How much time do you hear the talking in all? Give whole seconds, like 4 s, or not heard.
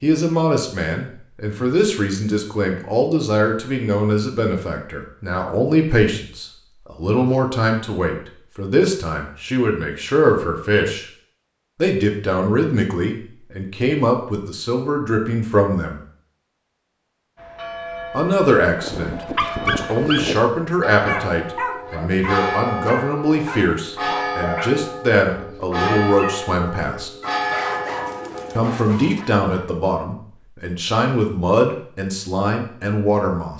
29 s.